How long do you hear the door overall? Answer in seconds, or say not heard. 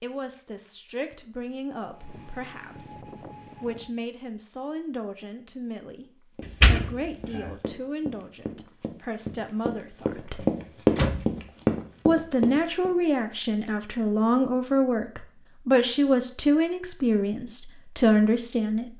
2 s.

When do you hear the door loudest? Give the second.
7 s.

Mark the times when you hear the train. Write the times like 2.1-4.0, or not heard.
1.9-4.0.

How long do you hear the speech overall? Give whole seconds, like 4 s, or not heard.
17 s.